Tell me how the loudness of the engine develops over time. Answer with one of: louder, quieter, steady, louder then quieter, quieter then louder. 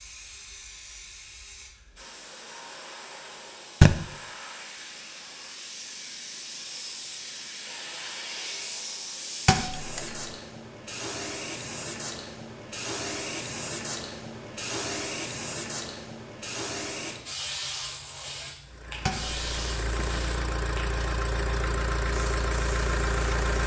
louder.